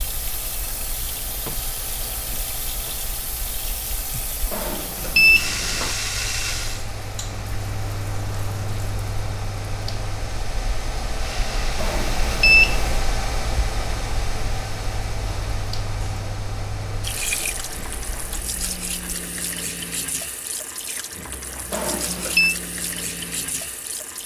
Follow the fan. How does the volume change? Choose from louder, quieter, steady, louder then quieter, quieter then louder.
louder then quieter.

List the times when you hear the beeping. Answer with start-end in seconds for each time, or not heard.
4.5-6.0, 11.8-12.9, 21.7-22.6.